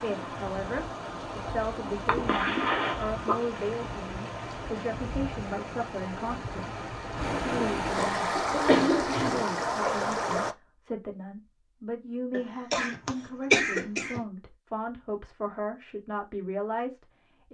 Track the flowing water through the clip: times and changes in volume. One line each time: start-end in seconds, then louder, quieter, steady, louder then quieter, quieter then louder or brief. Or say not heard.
0.0-10.6 louder.